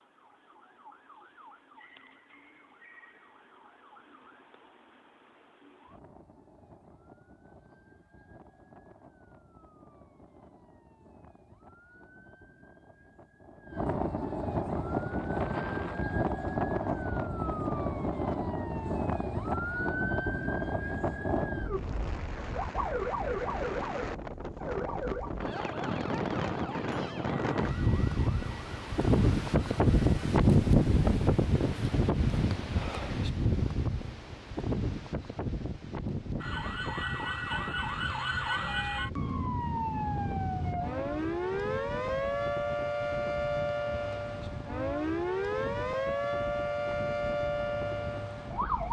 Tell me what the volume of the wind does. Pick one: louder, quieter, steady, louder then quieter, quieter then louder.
louder then quieter.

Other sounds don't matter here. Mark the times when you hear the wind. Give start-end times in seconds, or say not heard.
14.9-48.8.